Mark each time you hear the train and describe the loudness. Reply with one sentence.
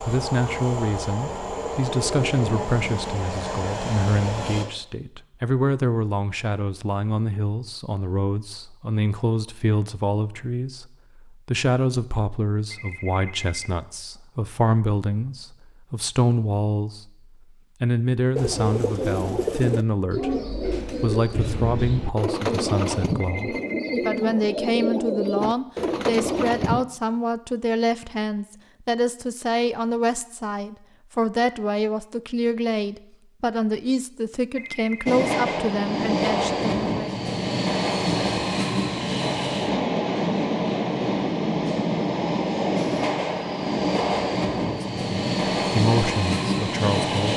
You can hear the train from 0.0 to 4.7 s, at a steady volume; and from 35.0 to 47.3 s, at a steady volume.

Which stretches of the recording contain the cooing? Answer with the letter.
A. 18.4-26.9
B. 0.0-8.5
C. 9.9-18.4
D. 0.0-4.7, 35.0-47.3
A.